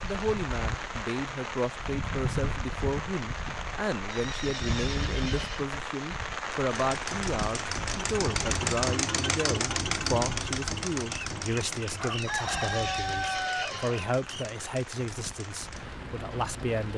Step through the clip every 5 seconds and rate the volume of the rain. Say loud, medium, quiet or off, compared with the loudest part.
loud, loud, medium, medium.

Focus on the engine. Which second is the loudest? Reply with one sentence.
The loudest moment of the engine is at 9 seconds.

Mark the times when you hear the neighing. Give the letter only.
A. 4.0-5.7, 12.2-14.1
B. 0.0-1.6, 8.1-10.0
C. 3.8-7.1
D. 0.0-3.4
A.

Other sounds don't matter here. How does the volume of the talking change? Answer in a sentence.
The volume of the talking stays about the same.